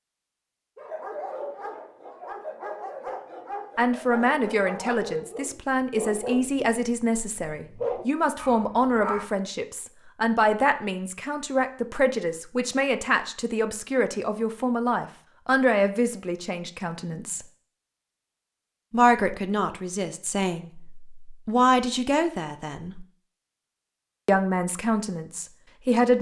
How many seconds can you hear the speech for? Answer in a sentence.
The speech can be heard for 20 seconds in total.